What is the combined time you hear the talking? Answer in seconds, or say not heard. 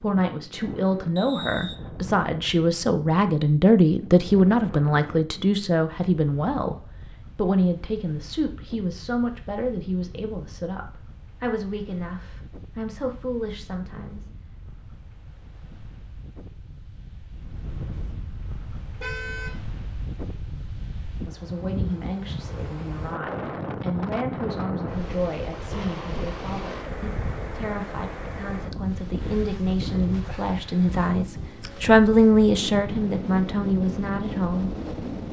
28 s.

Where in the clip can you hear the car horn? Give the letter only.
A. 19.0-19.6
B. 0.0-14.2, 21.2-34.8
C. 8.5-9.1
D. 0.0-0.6
A.